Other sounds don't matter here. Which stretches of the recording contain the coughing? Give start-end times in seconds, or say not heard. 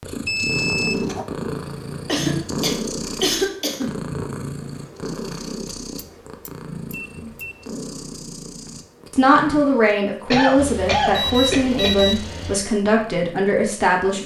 2.0-4.0, 10.3-11.9.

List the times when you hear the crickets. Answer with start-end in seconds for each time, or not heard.
not heard.